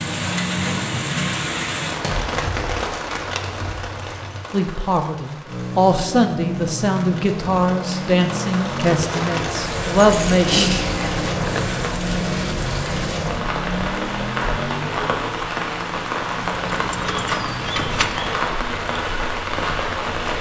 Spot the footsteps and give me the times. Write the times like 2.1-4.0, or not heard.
not heard.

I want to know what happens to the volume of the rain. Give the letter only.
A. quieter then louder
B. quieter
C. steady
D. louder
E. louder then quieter
A.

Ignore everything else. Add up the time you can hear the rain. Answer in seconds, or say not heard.
20 s.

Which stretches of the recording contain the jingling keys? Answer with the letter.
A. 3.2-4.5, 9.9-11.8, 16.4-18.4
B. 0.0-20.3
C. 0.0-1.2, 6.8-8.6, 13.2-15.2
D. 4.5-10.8
A.